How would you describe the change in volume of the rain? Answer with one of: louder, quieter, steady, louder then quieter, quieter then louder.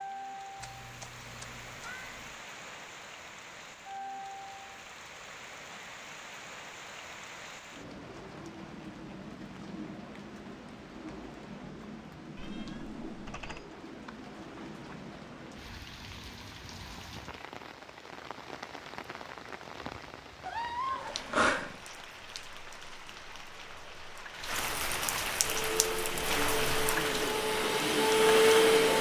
louder.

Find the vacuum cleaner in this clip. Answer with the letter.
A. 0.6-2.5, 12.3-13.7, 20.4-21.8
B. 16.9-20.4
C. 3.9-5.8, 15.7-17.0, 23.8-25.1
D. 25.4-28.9
D.